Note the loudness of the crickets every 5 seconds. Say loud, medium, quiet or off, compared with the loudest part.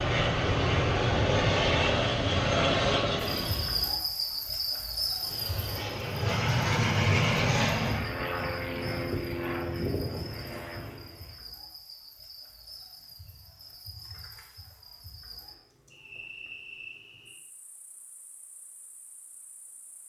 loud, medium, quiet, quiet.